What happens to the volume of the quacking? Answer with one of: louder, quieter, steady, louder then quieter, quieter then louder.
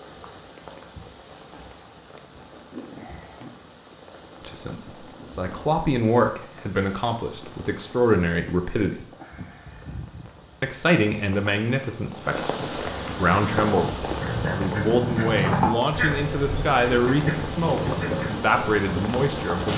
louder then quieter.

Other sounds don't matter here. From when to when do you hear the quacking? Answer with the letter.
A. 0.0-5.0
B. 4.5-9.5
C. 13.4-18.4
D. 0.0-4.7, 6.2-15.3
C.